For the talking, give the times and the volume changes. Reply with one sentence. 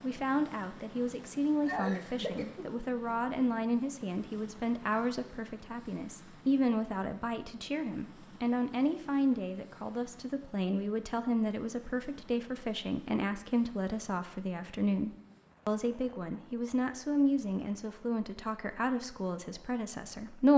You can hear the talking from 0.0 to 20.5 s, at a steady volume.